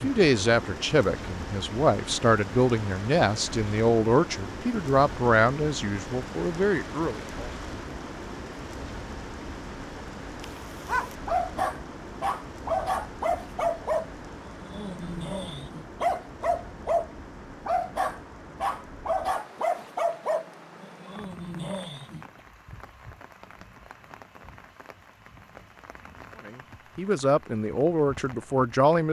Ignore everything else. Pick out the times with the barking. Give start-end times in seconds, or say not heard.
10.4-22.2.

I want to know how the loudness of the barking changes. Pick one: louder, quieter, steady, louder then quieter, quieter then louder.
steady.